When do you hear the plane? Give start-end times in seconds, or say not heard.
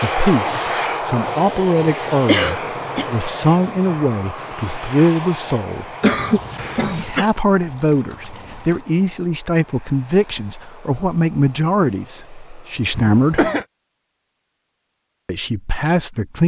0.0-13.5.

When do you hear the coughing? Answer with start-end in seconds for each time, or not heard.
2.2-3.1, 6.0-7.2, 12.9-13.7.